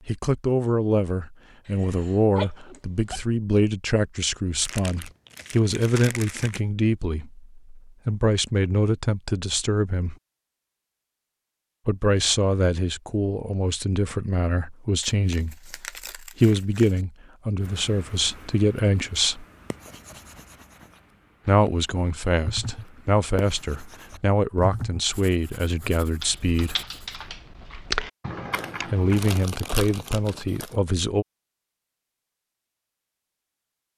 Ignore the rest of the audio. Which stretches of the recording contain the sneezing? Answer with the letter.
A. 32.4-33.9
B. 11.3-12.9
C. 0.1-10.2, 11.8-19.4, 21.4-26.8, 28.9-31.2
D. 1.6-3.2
D.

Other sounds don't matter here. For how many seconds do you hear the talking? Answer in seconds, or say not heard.
25 s.